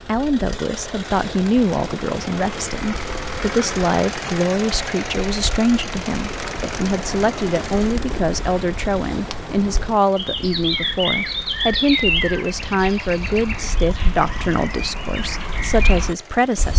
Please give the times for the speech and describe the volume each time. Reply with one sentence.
The speech can be heard from 0.1 to 16.7 s, at a steady volume.